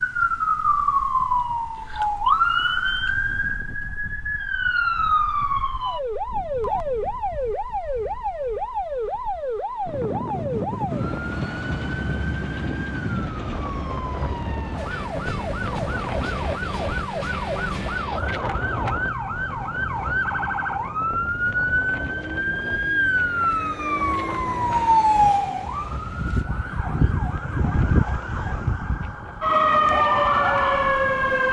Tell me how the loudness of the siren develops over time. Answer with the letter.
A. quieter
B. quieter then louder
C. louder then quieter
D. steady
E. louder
B.